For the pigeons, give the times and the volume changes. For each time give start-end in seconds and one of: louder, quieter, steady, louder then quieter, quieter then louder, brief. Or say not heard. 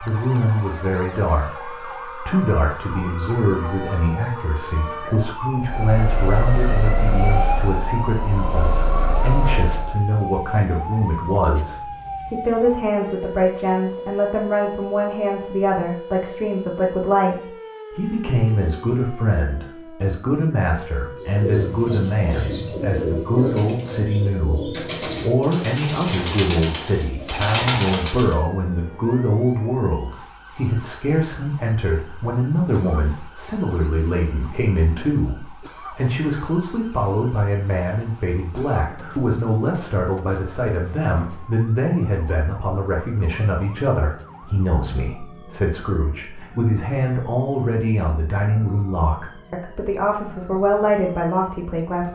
21.2-28.4 louder.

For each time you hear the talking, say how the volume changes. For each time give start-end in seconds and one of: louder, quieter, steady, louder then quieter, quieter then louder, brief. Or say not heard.
0.0-52.1 steady.